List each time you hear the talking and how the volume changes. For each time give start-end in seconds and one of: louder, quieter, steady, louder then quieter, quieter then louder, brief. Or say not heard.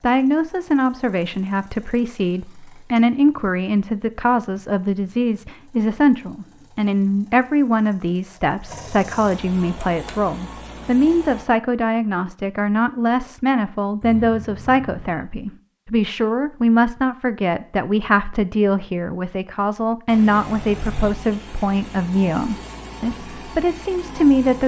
0.0-24.6 steady.